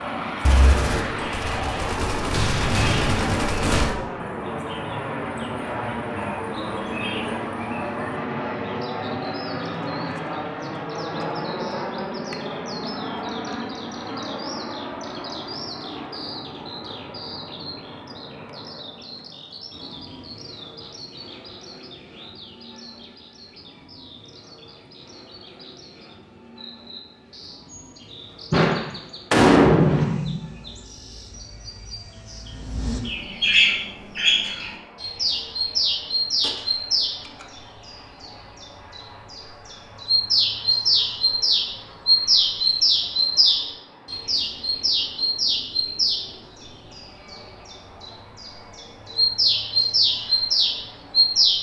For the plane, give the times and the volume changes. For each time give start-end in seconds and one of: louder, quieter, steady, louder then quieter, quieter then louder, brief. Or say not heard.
0.0-51.5 quieter.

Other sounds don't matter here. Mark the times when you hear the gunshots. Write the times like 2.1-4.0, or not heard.
0.5-4.0, 28.5-30.4, 36.4-37.5.